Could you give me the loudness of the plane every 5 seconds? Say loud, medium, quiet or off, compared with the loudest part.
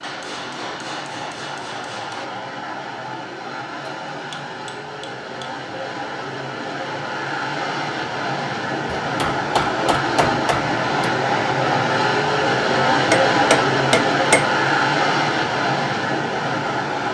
quiet, medium, loud, loud.